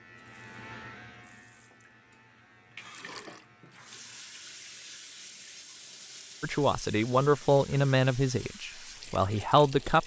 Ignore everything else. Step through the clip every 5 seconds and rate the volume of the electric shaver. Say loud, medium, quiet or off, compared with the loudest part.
loud, off.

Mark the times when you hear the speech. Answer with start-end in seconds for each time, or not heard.
6.4-10.0.